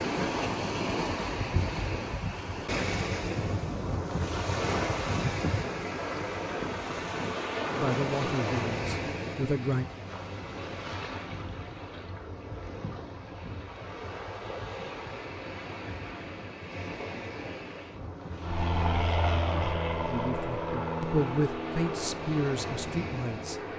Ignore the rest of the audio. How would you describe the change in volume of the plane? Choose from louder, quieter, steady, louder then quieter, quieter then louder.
quieter.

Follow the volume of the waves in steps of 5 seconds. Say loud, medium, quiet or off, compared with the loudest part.
loud, loud, medium, medium, medium.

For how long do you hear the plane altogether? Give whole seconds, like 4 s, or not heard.
5 s.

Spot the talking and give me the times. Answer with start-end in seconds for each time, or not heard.
7.8-9.8, 20.1-23.6.